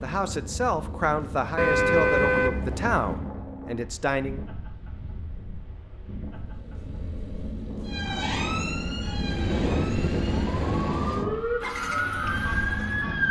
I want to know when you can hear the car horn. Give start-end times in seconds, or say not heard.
1.6-3.4.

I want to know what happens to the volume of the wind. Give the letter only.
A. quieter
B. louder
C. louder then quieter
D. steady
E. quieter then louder
E.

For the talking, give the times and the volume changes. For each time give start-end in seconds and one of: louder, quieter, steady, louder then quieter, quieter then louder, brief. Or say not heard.
0.0-4.5 quieter.